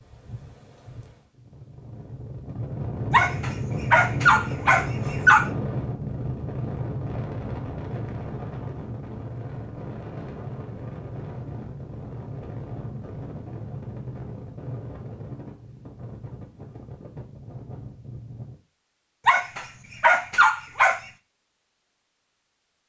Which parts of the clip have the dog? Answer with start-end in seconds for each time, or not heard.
3.1-5.5, 19.2-21.0.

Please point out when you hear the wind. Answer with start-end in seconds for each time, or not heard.
0.0-18.6.